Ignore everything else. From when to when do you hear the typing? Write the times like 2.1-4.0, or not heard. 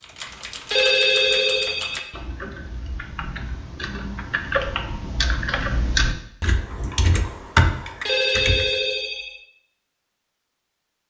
0.0-8.8.